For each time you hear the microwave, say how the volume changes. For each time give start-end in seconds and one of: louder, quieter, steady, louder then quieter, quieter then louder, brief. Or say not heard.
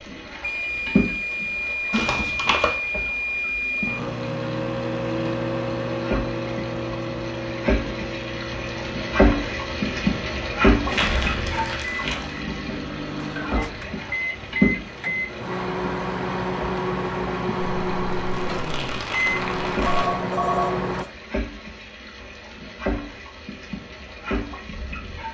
0.0-21.1 quieter then louder.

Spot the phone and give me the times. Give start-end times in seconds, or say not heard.
19.8-21.1.